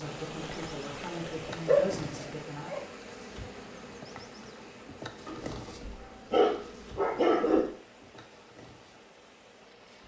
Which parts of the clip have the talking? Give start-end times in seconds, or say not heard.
0.0-2.8.